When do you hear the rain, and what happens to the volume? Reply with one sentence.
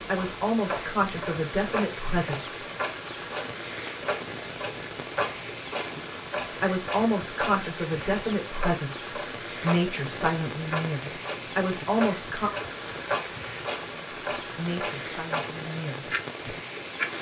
You can hear the rain from 0.0 to 17.1 s, at a steady volume.